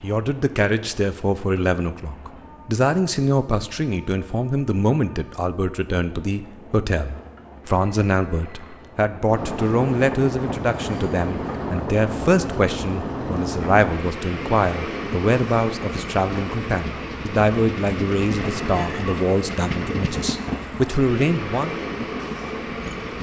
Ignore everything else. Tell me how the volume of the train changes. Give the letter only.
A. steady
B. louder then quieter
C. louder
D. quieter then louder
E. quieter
C.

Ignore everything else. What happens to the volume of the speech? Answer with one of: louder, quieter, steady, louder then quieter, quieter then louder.
steady.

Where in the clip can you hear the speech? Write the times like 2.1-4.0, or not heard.
0.0-21.8.